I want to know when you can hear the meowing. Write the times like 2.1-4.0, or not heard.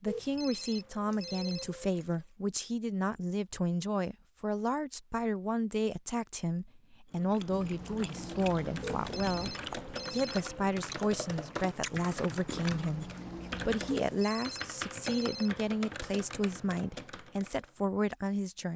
not heard.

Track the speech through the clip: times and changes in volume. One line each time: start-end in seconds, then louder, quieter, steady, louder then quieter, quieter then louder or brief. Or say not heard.
0.0-18.7 steady.